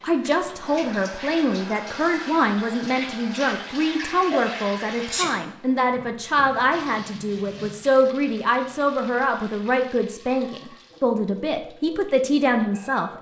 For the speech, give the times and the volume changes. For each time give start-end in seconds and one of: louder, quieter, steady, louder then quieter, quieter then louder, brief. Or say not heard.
0.0-13.1 steady.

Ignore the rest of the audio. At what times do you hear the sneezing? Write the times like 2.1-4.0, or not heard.
4.3-5.3.